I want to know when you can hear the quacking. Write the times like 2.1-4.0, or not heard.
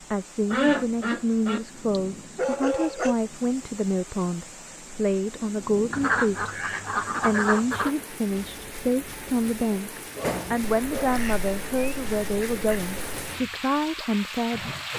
0.5-1.6, 5.9-8.0, 10.6-13.2.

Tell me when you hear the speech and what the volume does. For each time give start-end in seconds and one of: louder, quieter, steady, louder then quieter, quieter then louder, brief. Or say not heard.
0.1-6.5 steady
7.2-14.7 steady.